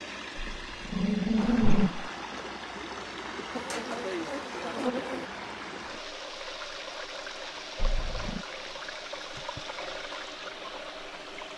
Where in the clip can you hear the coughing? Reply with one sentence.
The coughing can't be heard in this clip.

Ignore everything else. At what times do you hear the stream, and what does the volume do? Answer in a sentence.
The stream can be heard from 0.0 to 11.5 s, at a steady volume.